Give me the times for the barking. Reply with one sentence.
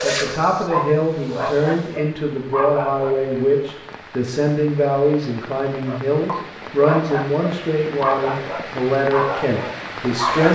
The barking can be heard from 0.0 to 3.2 s and from 5.8 to 10.5 s.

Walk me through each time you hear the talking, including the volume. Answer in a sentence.
You can hear the talking from 0.0 to 10.5 s, at a steady volume.